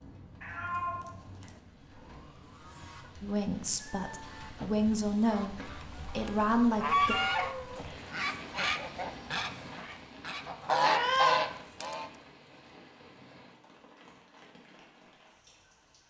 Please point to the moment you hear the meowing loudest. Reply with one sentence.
The volume of the meowing peaks at 11 seconds.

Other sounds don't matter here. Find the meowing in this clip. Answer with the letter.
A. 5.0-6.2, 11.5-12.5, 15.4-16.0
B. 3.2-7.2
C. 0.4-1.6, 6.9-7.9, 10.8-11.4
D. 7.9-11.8
C.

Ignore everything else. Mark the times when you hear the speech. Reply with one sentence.
The speech can be heard from 3.2 to 7.2 s.